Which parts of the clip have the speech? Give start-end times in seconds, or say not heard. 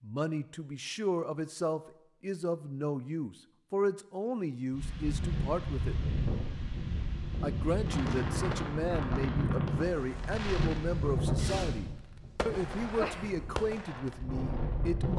0.0-6.0, 7.4-15.1.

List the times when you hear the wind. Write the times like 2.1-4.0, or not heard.
4.7-15.1.